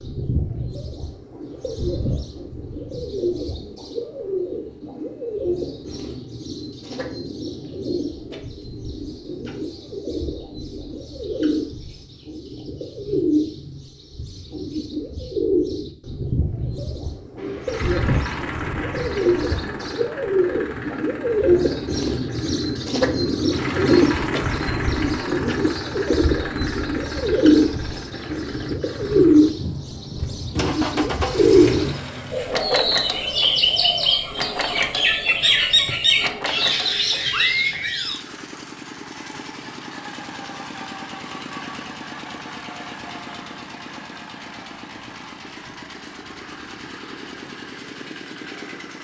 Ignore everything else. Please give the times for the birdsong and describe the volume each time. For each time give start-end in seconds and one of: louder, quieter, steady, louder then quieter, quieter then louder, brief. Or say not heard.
0.0-38.2 louder.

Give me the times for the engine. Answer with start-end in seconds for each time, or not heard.
17.4-48.9.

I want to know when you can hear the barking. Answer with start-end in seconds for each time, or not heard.
not heard.